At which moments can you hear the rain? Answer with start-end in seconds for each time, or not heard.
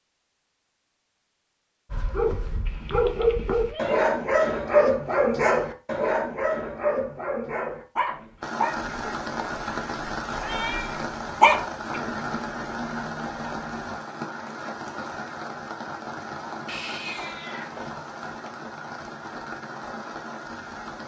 8.4-21.0.